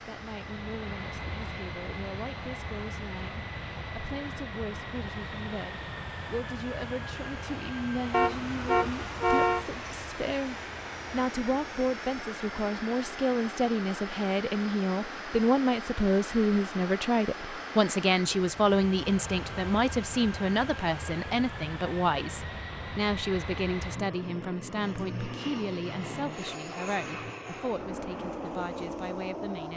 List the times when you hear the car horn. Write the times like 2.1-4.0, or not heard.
8.1-9.7.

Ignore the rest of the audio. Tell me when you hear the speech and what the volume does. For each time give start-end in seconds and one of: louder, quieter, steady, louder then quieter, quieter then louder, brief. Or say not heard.
0.1-29.7 louder then quieter.